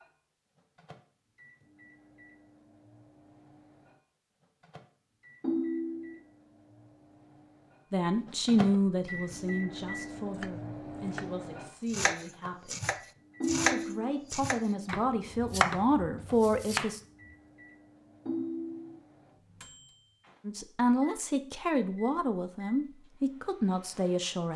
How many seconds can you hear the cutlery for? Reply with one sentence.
You can't hear the cutlery here.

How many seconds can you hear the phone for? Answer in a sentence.
You can hear the phone for 2 seconds altogether.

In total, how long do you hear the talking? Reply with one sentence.
You can hear the talking for 13 seconds altogether.